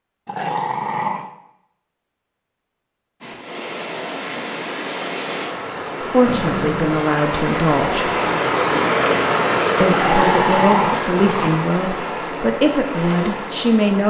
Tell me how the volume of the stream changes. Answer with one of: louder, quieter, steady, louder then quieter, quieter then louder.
louder then quieter.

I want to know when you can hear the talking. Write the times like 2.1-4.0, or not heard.
6.1-8.1, 9.8-14.0.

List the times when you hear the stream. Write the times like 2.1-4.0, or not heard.
3.2-14.0.